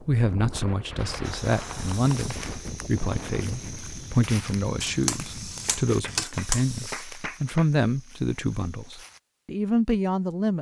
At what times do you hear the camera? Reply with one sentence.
The camera can be heard from 4.8 to 7.0 s.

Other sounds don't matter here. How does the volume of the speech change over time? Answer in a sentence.
The volume of the speech stays about the same.